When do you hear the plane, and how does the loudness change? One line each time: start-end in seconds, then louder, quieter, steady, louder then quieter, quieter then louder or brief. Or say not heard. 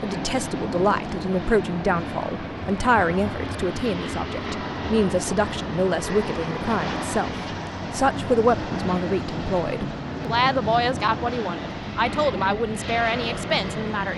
0.0-14.1 steady.